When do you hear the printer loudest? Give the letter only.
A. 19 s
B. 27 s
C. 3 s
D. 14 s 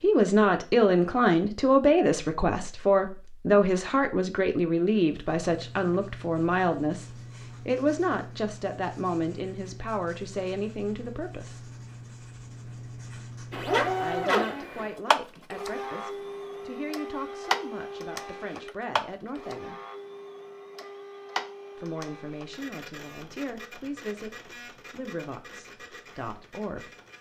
D.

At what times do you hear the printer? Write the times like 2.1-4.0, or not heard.
13.5-27.1.